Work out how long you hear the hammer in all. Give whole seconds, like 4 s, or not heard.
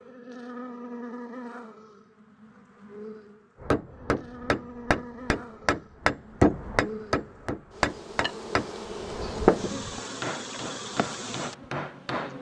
9 s.